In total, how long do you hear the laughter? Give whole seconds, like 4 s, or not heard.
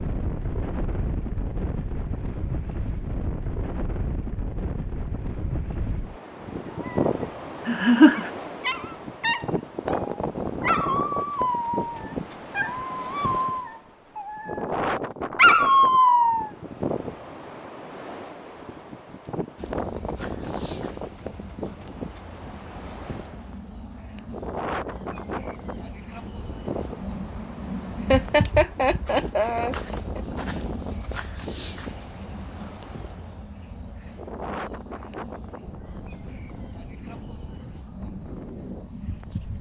3 s.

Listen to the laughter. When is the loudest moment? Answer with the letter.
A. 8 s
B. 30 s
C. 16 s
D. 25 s
A.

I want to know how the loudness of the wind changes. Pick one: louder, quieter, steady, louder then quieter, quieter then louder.
quieter.